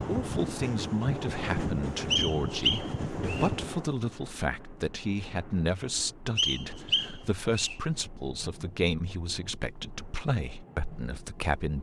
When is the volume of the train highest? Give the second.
2 s.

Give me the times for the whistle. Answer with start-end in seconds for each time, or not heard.
2.1-3.5, 6.3-7.8.